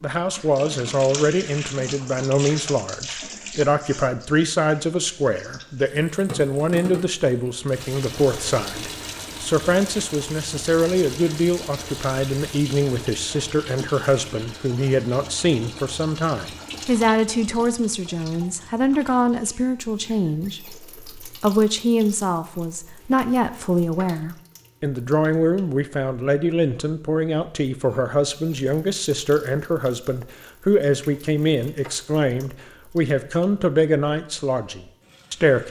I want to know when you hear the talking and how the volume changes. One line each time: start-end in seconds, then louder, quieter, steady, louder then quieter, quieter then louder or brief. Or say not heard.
0.0-35.6 steady.